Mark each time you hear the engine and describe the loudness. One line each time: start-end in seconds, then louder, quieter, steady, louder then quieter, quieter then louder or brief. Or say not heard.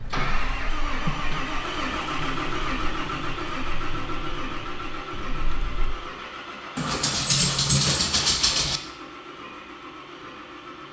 0.0-10.8 quieter.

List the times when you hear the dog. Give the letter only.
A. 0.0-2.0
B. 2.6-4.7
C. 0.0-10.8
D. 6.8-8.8
D.